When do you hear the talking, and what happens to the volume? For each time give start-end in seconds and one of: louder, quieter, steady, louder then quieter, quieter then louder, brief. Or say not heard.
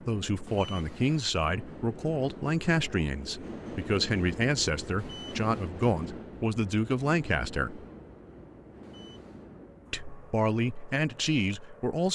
0.1-7.8 steady
9.9-12.0 brief.